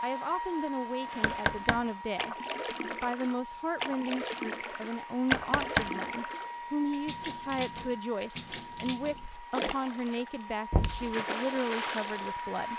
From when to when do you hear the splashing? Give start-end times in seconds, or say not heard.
1.0-12.4.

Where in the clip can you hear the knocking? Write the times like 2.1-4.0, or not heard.
1.2-1.9, 5.3-5.9, 10.7-11.2.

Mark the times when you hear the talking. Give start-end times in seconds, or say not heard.
0.0-2.4, 3.0-12.7.